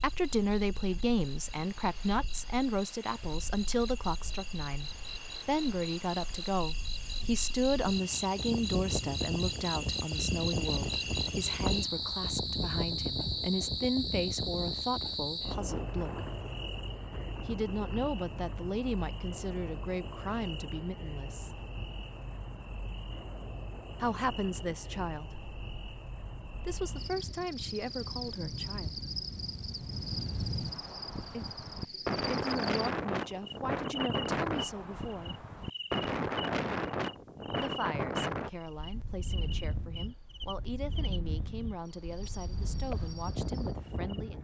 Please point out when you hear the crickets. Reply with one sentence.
You can hear the crickets from 0.0 to 44.3 s.